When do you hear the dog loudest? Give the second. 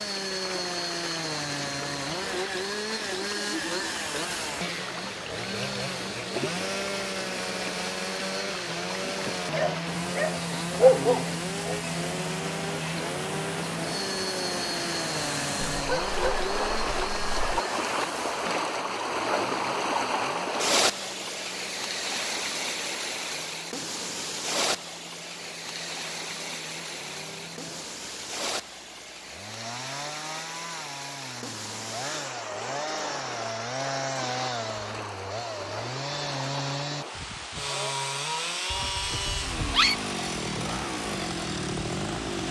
11 s.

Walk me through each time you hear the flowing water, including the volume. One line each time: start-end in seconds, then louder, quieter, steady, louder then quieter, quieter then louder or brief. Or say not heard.
0.0-42.4 louder then quieter.